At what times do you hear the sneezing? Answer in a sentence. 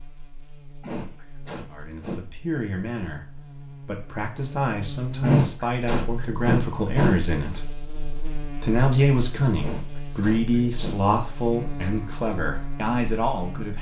You can hear the sneezing from 0.8 to 2.2 s, from 5.2 to 7.2 s and from 9.6 to 11.0 s.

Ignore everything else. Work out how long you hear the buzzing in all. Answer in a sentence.
You can hear the buzzing for 14 seconds altogether.